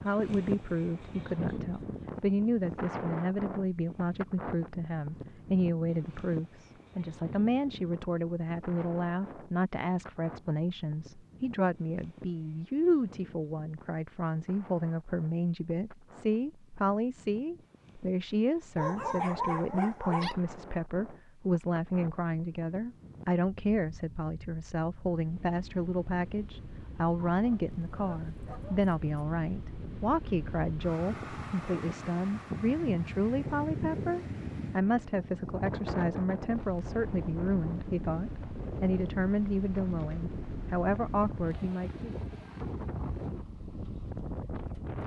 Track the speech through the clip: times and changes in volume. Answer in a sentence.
You can hear the speech from 0.0 to 42.1 s, at a steady volume.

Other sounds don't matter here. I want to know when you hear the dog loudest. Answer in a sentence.
The loudest moment of the dog is at 19 seconds.